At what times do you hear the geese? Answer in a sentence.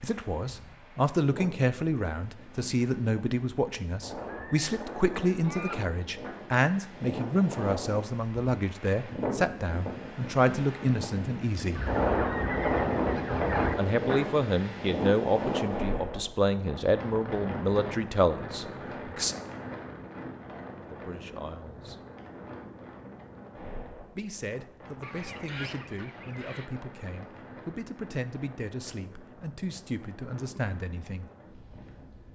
The geese can be heard from 4.2 to 5.8 s, from 11.8 to 13.8 s and from 25.0 to 26.7 s.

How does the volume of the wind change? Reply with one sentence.
The loudness of the wind goes up, then down.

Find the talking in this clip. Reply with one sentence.
The talking can be heard from 0.0 to 11.8 s, from 13.8 to 19.4 s, from 20.9 to 22.0 s and from 24.1 to 31.3 s.